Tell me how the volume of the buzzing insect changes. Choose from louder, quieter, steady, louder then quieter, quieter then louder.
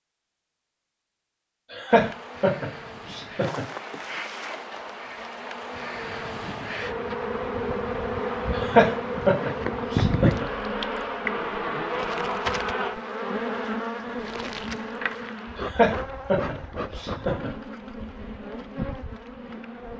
louder then quieter.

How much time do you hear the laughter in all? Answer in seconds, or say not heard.
6 s.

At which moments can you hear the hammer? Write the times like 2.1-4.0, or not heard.
not heard.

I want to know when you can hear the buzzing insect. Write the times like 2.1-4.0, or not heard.
1.9-19.9.